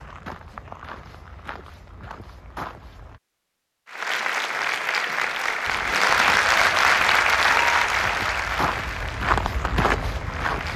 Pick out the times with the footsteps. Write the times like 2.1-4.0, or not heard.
0.0-3.2, 5.7-10.7.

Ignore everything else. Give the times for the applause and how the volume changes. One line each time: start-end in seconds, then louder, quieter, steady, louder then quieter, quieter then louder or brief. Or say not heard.
3.9-10.7 louder then quieter.